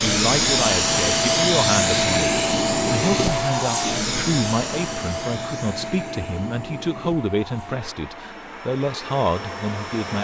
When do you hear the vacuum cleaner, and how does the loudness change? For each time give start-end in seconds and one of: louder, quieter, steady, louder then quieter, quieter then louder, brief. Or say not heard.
0.0-10.2 quieter.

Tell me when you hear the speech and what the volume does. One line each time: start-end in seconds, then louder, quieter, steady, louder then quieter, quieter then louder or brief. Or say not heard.
0.0-10.2 steady.